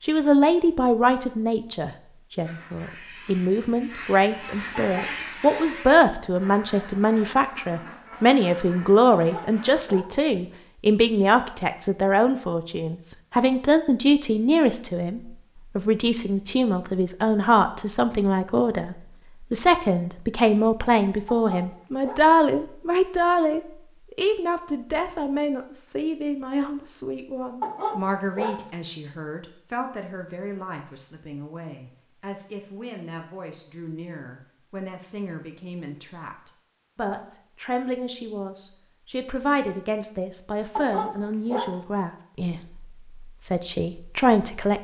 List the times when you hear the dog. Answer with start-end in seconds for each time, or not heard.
4.9-5.8, 9.1-10.2, 21.2-22.3, 27.6-28.6, 40.8-41.8.